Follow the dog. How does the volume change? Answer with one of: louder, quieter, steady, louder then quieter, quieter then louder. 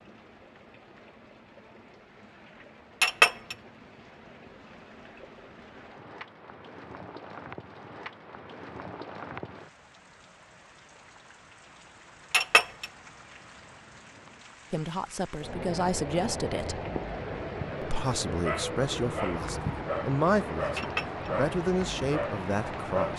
steady.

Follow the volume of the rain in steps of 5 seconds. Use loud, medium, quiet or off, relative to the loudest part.
quiet, medium, quiet, loud, loud.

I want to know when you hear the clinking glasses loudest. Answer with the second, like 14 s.
3 s.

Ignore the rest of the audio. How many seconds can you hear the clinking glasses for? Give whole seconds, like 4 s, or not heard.
2 s.